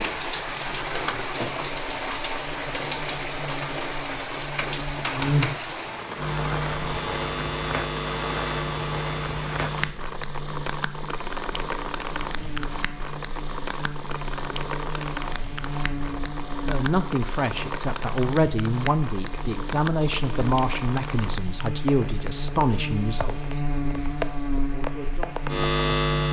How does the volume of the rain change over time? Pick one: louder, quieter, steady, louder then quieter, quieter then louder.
quieter.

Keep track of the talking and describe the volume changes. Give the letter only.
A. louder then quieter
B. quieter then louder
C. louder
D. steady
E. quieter
E.